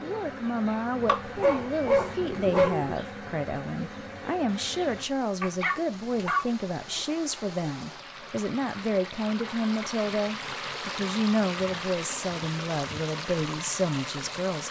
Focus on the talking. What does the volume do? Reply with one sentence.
The loudness of the talking stays about the same.